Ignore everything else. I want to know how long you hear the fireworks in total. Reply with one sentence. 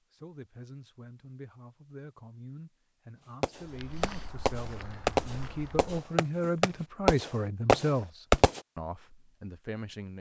You can hear the fireworks for 5 seconds altogether.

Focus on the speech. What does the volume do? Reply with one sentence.
The volume of the speech goes up.